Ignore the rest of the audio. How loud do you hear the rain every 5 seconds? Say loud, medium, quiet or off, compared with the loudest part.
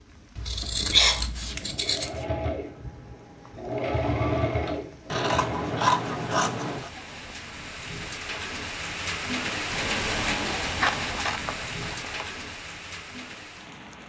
quiet, loud, loud.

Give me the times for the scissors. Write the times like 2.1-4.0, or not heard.
0.3-2.2, 5.1-6.9, 10.8-12.2.